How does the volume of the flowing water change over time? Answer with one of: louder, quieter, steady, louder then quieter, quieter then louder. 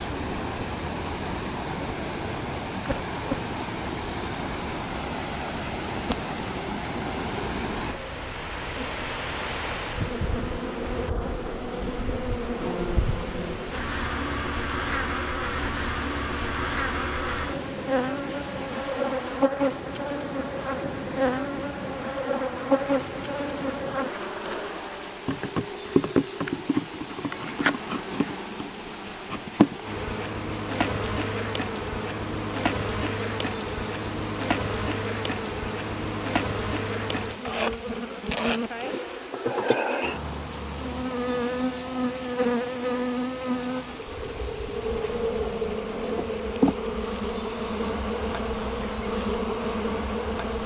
quieter.